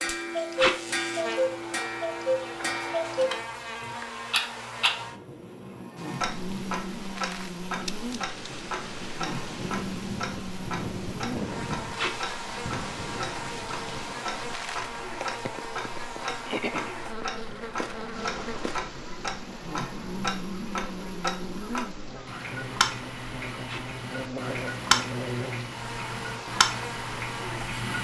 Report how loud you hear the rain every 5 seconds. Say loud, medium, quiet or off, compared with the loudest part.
off, loud, loud, loud, medium, medium.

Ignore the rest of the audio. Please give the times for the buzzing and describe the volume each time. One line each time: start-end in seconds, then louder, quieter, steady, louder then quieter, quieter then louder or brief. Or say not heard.
0.0-27.9 steady.